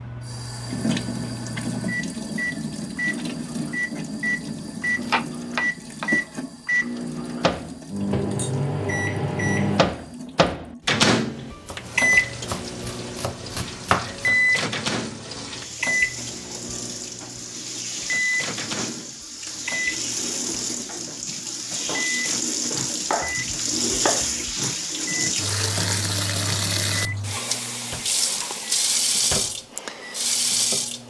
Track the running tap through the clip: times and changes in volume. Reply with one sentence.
The running tap can be heard from 0.0 to 31.0 s, getting quieter then louder.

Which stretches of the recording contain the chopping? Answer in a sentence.
You can hear the chopping from 4.9 to 6.1 s, from 11.7 to 14.3 s and from 23.1 to 24.6 s.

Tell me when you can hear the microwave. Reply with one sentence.
The microwave can be heard from 0.0 to 31.0 s.